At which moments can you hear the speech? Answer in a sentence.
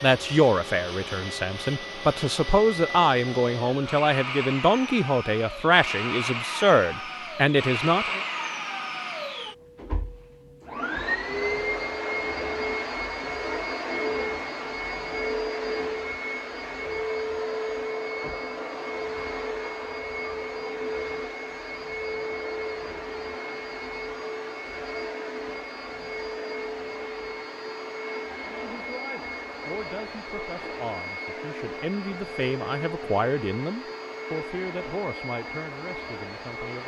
You can hear the speech from 0.0 to 8.2 s and from 28.5 to 36.8 s.